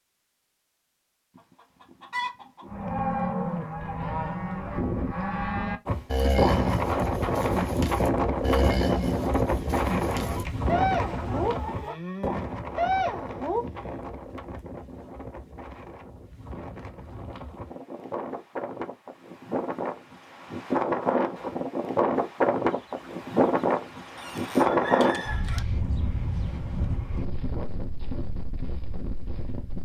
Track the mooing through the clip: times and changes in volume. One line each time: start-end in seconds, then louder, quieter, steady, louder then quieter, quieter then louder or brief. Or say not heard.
2.6-13.9 steady.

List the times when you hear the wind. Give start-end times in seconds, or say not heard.
5.8-29.8.